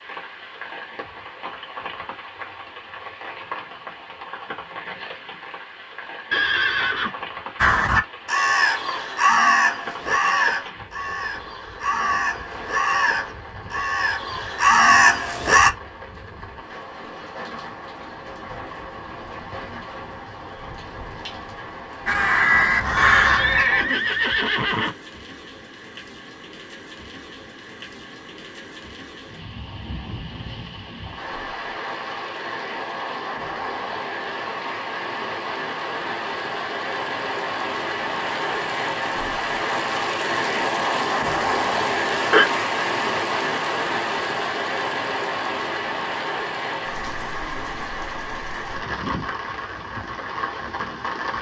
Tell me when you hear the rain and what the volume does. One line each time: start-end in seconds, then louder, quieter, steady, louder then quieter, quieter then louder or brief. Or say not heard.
0.0-51.3 louder.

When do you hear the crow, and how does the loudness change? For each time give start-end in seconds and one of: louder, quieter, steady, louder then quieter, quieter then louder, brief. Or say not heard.
7.5-15.7 quieter then louder
22.1-23.6 brief.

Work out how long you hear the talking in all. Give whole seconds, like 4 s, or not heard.
not heard.